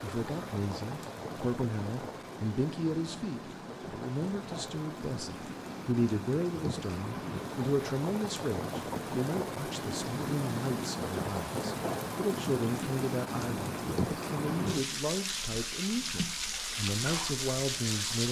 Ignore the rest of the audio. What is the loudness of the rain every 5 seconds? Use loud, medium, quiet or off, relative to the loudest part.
medium, loud, loud, loud.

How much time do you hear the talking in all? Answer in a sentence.
The talking can be heard for 18 seconds in total.